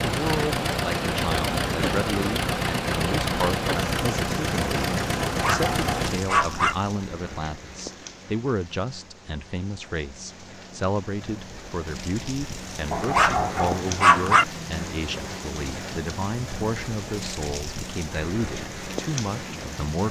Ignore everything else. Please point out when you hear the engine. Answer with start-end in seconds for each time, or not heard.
0.0-6.3.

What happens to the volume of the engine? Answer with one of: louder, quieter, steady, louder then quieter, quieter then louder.
steady.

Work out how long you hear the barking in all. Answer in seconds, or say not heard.
3 s.